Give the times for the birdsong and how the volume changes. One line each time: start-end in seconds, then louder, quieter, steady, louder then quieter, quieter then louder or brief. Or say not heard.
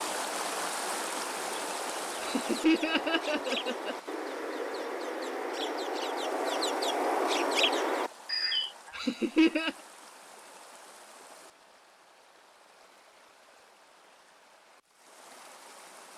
0.0-8.8 louder.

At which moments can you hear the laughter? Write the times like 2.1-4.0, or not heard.
2.2-4.0, 8.9-9.8.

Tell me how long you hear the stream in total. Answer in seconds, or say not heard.
16 s.